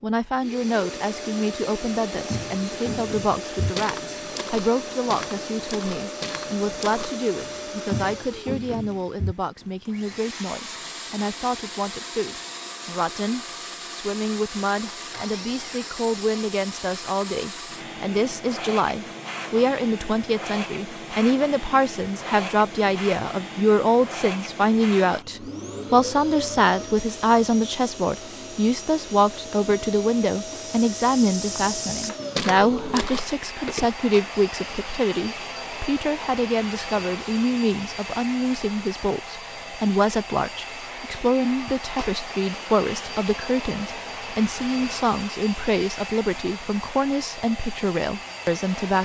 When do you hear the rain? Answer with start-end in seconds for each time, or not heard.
not heard.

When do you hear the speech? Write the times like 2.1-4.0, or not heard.
0.0-48.9.